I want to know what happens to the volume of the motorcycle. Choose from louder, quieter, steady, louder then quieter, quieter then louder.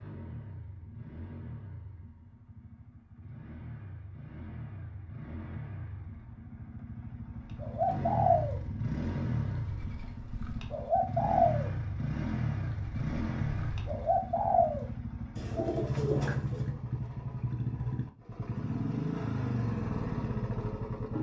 louder.